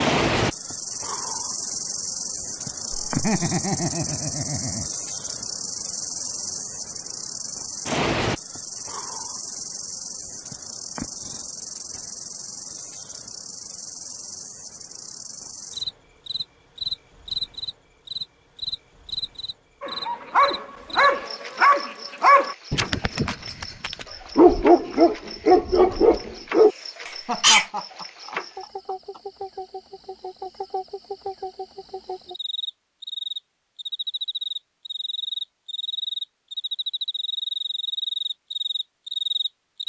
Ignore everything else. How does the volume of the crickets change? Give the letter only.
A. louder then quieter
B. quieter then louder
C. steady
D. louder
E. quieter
B.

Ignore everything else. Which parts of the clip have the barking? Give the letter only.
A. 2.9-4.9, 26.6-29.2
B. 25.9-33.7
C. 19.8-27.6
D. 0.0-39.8
C.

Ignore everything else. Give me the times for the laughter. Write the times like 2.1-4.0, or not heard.
2.9-4.9, 26.6-29.2.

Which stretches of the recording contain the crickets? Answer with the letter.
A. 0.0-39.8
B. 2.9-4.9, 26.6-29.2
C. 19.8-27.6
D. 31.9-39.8
A.